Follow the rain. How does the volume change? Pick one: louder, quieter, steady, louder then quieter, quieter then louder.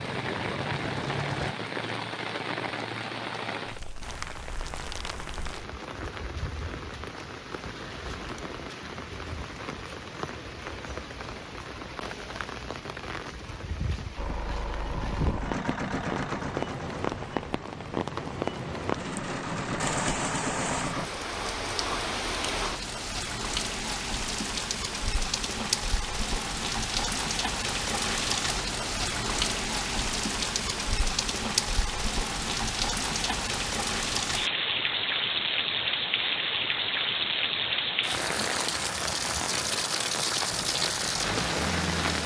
louder.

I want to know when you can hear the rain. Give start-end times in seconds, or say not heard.
0.0-42.2.